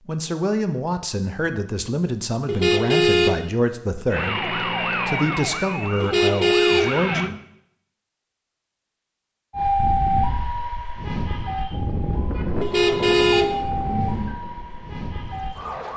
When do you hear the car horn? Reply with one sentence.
You can hear the car horn from 2.5 to 3.4 s, from 6.0 to 7.4 s and from 12.6 to 14.3 s.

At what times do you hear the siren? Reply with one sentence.
The siren can be heard from 4.1 to 7.3 s and from 9.5 to 15.9 s.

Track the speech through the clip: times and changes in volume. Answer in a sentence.
The speech can be heard from 0.1 to 7.3 s, at a steady volume.